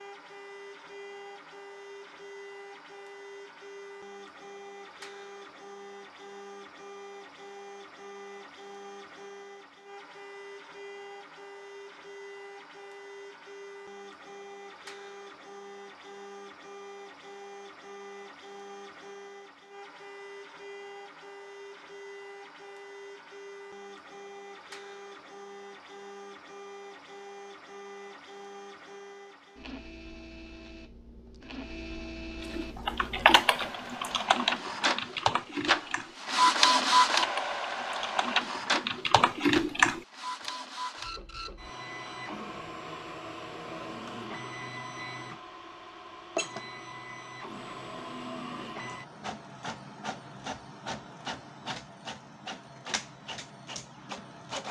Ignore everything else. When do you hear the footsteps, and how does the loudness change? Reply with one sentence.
You can't hear the footsteps here.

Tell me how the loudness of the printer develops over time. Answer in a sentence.
The volume of the printer goes up, then down.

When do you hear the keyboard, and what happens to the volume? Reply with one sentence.
You can hear the keyboard from 32.5 to 40.0 s, getting quieter then louder.